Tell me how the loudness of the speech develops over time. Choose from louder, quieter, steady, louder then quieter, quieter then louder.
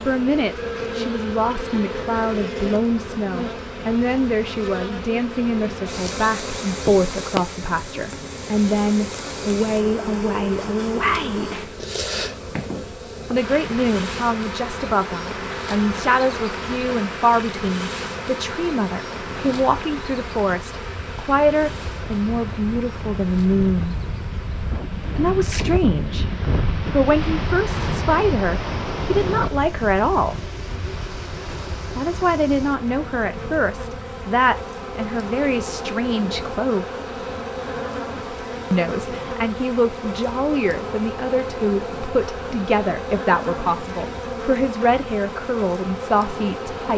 steady.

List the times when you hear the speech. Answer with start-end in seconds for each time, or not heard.
0.1-11.7, 13.3-23.9, 25.1-30.4, 31.9-36.9, 38.7-46.9.